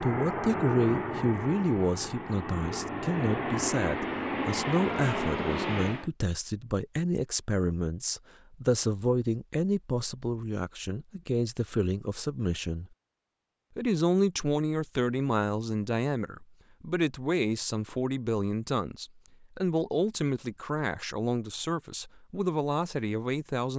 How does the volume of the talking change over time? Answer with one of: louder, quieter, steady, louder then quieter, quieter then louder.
steady.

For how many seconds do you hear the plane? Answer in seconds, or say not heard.
6 s.